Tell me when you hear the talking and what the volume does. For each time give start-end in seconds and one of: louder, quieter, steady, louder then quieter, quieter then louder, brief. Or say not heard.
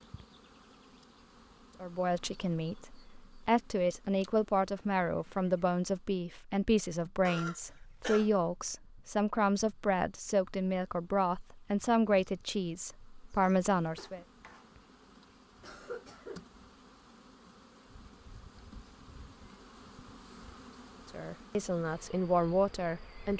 1.8-14.2 steady
21.1-23.3 brief.